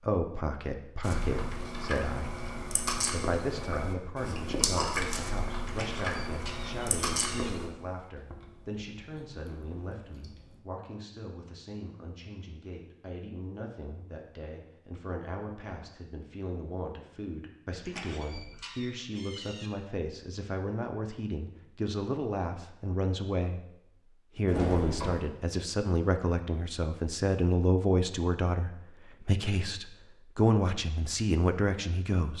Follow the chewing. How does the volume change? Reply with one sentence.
The volume of the chewing goes down.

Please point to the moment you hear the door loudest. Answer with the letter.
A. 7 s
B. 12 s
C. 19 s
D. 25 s
D.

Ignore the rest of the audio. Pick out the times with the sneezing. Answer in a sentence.
You can't hear the sneezing here.